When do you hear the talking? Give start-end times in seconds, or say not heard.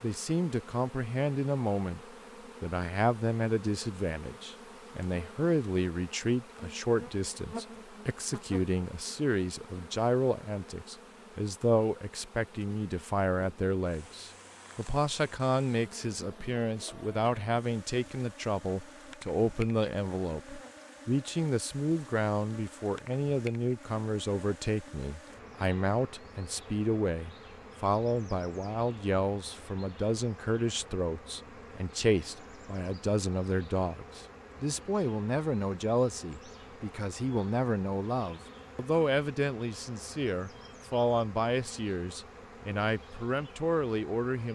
0.0-2.0, 2.6-44.4.